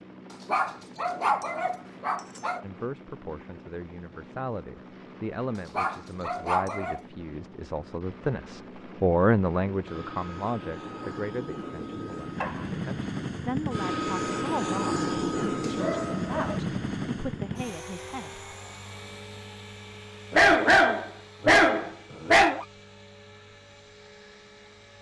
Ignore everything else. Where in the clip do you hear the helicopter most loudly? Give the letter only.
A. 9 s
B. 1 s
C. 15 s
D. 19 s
C.